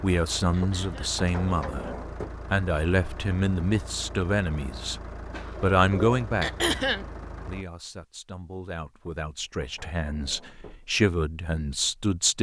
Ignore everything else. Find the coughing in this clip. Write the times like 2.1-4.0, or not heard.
0.5-1.2, 6.4-7.0.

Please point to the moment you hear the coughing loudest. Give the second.
7 s.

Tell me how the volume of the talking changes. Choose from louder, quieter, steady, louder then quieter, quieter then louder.
quieter then louder.